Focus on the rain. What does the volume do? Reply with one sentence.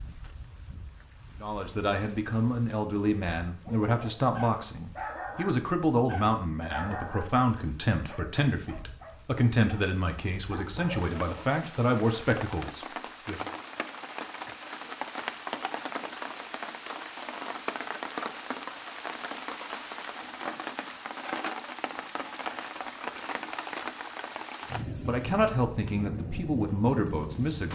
The volume of the rain goes up.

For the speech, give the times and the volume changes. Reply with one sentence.
You can hear the speech from 1.4 to 13.5 s, at a steady volume; and briefly from 25.0 to 27.7 s.